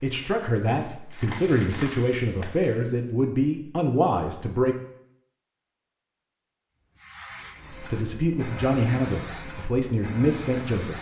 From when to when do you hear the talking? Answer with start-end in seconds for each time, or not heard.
0.0-4.8, 7.7-10.9.